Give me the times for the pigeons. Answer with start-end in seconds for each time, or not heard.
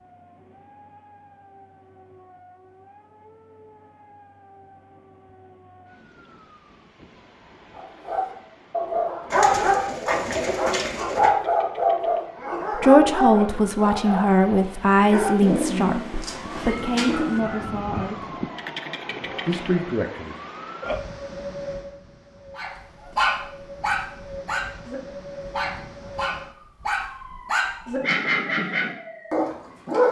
9.3-11.3, 15.4-17.4.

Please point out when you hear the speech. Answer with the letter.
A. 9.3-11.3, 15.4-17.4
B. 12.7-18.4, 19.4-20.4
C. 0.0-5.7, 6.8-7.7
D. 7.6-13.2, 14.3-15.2
B.